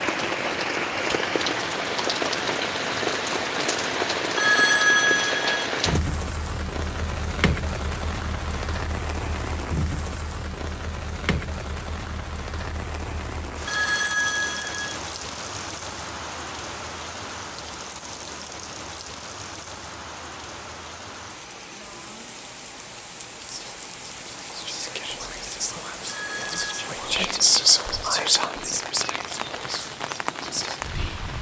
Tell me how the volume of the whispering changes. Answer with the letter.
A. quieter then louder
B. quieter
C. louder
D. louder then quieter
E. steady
D.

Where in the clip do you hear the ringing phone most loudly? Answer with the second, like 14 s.
5 s.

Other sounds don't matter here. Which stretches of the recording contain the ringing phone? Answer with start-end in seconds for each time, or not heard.
4.3-5.7, 13.7-15.0, 26.1-26.7.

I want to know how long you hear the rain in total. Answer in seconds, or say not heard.
31 s.